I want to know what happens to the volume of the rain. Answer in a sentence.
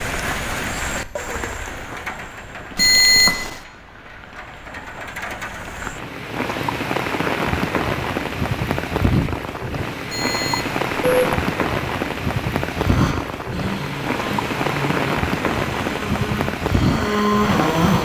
The volume of the rain goes up.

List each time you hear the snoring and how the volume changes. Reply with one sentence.
You can hear the snoring from 12.7 to 18.0 s, getting louder.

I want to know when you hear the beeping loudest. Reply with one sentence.
The volume of the beeping peaks at 3 seconds.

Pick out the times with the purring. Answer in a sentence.
You can't hear the purring here.